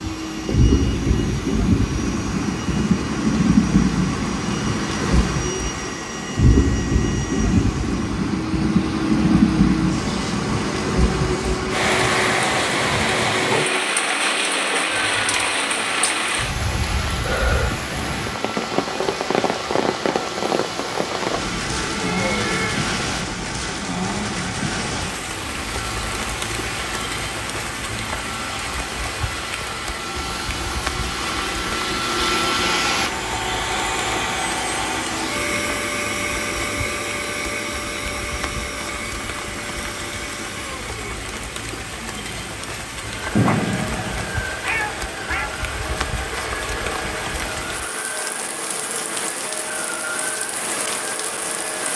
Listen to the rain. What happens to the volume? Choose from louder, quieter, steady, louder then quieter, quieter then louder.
quieter.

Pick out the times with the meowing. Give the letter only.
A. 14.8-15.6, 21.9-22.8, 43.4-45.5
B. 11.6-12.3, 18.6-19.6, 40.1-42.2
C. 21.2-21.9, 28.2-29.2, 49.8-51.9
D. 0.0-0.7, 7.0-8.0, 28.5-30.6
A.